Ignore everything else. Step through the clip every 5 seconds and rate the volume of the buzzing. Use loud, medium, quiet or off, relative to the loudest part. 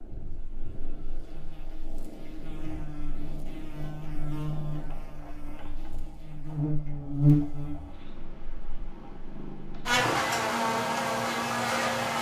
quiet, loud, loud.